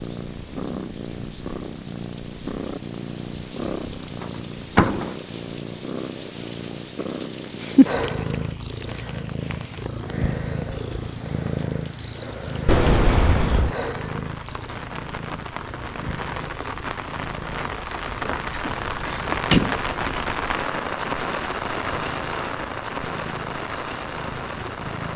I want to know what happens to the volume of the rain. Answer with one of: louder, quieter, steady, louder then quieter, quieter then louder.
louder.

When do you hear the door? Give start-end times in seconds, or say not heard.
4.2-5.2, 12.7-13.8, 18.6-19.9.